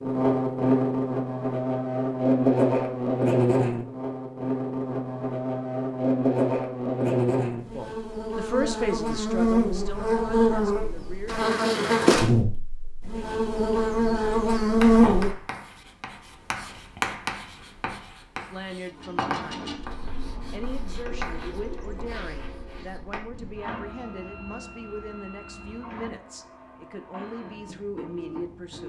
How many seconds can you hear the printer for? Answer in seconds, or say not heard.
10 s.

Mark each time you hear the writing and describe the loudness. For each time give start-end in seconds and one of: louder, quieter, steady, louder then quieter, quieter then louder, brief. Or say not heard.
14.8-26.1 quieter.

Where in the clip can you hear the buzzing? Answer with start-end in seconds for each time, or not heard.
0.0-15.3.